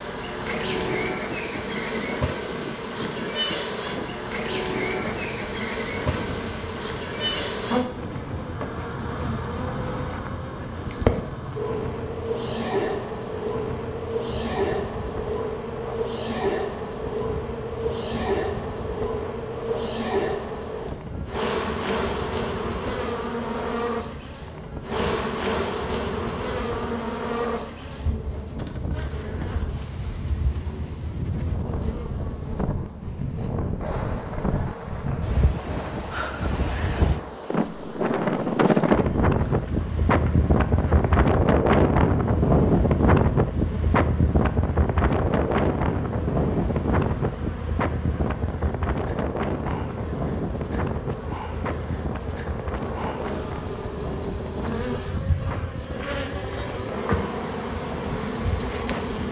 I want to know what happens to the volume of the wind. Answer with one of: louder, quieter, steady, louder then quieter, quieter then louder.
louder then quieter.